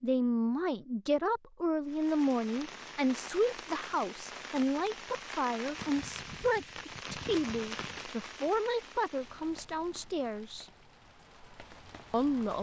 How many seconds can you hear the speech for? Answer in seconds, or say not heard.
11 s.